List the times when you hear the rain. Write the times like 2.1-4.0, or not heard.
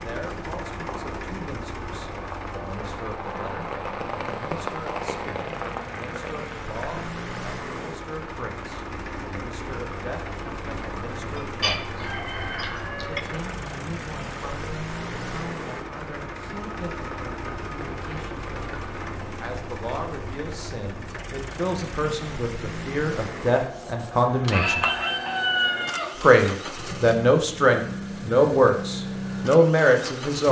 0.0-19.1.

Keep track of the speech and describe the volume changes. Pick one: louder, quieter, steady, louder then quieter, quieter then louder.
louder.